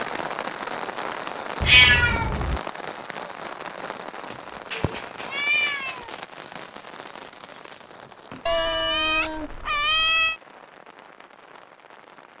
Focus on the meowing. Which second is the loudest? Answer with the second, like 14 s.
2 s.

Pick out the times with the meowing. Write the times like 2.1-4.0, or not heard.
1.6-2.6, 4.3-6.0, 8.4-10.4.